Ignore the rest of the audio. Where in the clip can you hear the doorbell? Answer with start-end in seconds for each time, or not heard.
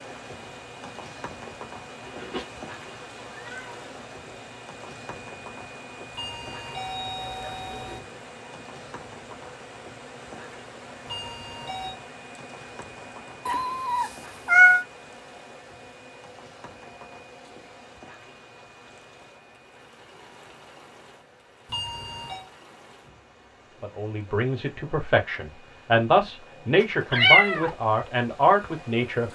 6.1-8.0, 11.1-11.9, 21.6-22.5.